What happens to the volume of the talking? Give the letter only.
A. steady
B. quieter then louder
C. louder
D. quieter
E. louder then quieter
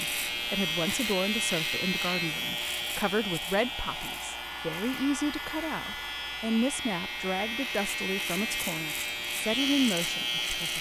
A.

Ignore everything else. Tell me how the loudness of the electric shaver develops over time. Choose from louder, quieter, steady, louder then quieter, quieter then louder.
quieter then louder.